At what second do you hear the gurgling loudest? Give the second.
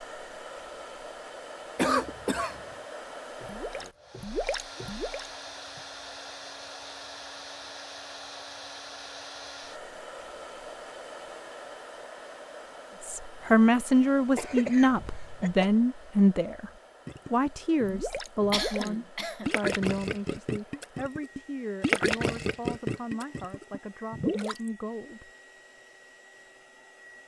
22 s.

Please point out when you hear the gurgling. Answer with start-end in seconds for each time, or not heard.
3.4-5.8, 17.1-24.7.